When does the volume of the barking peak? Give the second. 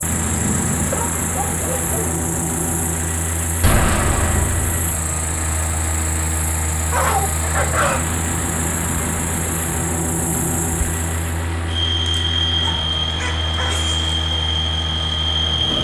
7 s.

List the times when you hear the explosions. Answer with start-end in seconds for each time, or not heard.
3.6-4.8.